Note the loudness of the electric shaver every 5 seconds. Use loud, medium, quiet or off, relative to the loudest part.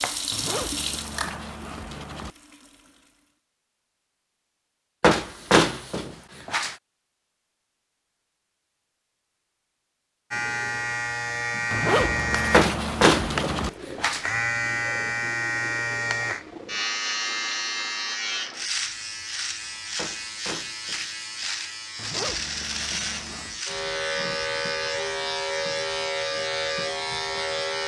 off, off, loud, loud, loud, loud.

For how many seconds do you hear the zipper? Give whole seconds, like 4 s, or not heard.
6 s.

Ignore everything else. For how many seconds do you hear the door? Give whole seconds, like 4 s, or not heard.
5 s.